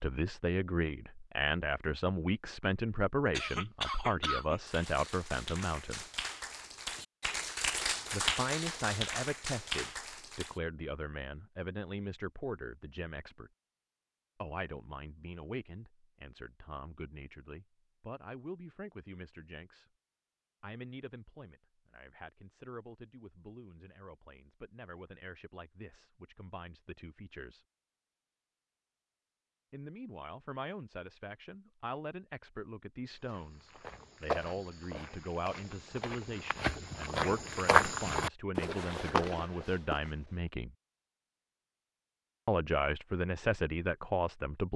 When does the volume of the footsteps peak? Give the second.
38 s.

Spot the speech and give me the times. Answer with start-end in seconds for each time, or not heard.
0.0-6.0, 8.1-13.5, 14.4-19.9, 20.6-27.6, 29.7-40.8, 42.5-44.7.